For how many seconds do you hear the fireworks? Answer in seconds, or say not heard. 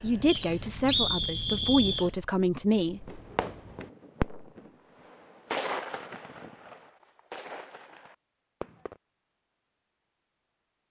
5 s.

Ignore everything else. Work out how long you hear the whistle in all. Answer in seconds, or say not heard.
2 s.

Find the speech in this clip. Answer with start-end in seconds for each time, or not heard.
0.0-3.2.